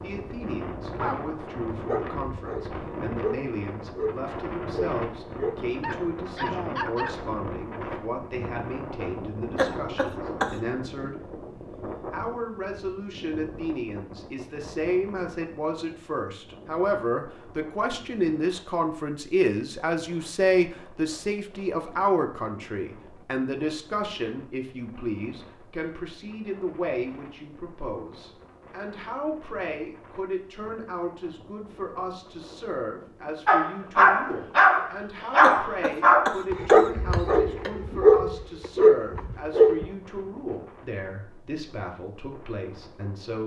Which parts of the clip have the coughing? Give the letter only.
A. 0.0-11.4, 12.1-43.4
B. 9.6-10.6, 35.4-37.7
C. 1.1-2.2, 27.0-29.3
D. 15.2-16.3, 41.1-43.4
B.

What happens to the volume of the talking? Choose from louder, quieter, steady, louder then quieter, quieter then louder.
louder then quieter.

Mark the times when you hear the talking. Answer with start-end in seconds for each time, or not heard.
0.0-11.4, 12.1-43.4.